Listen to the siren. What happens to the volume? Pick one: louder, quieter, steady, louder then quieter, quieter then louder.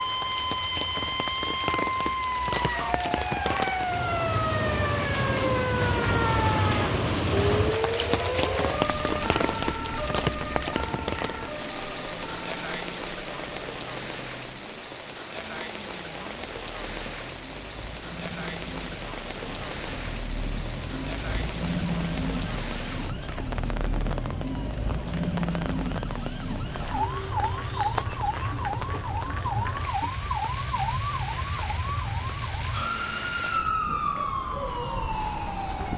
quieter then louder.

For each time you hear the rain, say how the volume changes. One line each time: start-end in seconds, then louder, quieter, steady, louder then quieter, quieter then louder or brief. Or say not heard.
0.0-35.9 quieter.